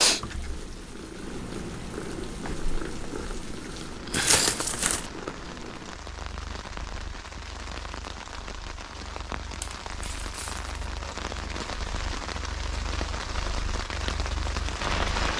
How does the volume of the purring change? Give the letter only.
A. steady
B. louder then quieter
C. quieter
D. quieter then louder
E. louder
D.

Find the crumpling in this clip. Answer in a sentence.
You can hear the crumpling from 4.1 to 5.1 s and from 9.6 to 10.6 s.